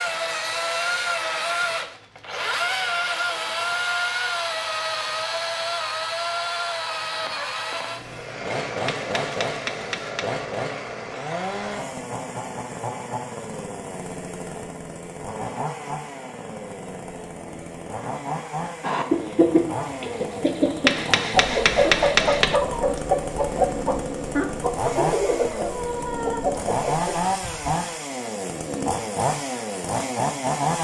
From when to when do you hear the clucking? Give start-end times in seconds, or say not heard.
18.8-27.8.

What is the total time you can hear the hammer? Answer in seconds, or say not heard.
3 s.